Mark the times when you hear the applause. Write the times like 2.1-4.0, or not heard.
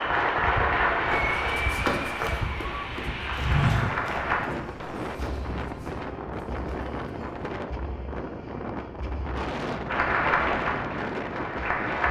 0.0-4.4, 9.8-12.0.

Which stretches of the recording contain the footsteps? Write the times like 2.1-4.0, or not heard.
1.1-7.5.